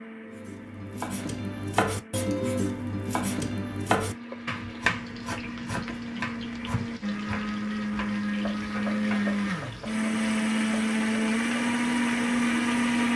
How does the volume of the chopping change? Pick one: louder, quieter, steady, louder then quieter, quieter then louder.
quieter.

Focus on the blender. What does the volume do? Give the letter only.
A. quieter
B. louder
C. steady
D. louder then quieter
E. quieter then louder
B.